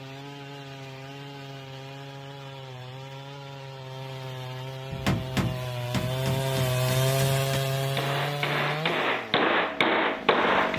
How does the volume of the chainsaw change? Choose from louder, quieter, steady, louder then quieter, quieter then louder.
louder then quieter.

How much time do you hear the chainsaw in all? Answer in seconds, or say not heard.
11 s.